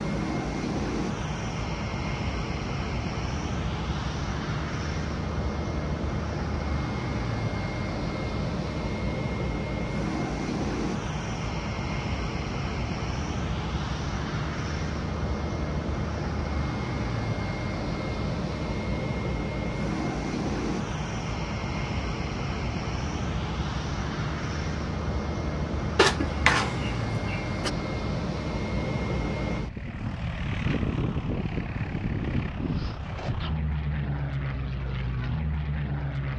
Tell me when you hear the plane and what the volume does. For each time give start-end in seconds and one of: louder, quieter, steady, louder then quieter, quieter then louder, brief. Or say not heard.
0.0-36.3 steady.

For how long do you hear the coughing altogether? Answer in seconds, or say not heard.
2 s.